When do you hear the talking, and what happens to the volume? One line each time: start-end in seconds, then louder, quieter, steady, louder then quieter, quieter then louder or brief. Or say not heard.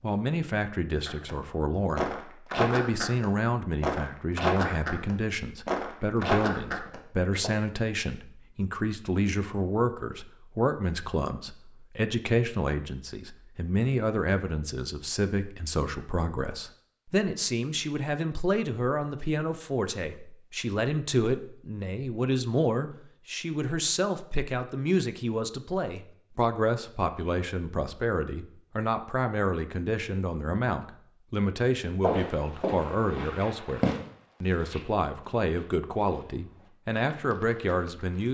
0.0-38.2 steady.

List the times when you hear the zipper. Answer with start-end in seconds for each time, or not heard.
not heard.